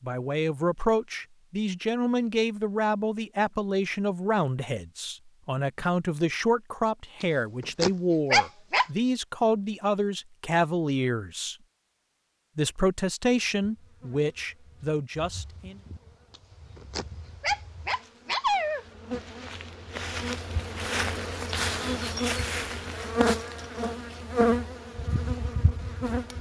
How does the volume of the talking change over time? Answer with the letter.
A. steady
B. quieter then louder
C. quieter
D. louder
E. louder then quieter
A.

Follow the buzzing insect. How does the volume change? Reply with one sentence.
The volume of the buzzing insect goes up.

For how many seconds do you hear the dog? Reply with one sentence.
You can hear the dog for 4 seconds altogether.